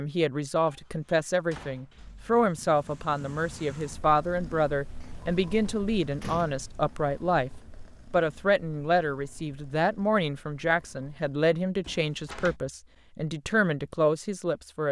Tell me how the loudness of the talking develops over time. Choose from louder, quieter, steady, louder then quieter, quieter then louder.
steady.